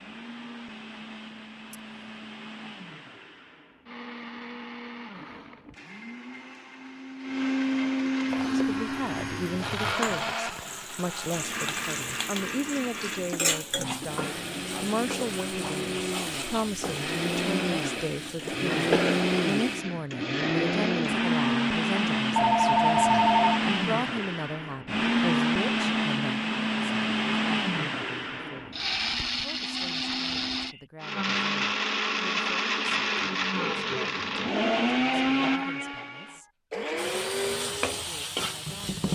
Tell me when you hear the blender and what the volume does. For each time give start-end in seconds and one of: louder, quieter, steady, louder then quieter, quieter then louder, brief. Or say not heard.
0.0-39.0 louder.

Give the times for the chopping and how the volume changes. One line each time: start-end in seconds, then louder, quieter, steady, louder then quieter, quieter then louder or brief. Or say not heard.
not heard.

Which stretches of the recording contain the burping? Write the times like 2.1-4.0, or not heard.
not heard.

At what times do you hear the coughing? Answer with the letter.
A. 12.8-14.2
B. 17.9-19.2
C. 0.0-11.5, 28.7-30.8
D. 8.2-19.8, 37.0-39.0
B.